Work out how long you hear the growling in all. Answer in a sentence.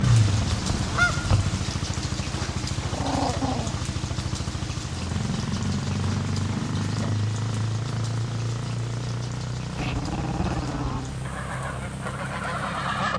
The growling can be heard for 2 seconds in total.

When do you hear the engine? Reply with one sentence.
You can hear the engine from 0.0 to 13.1 s.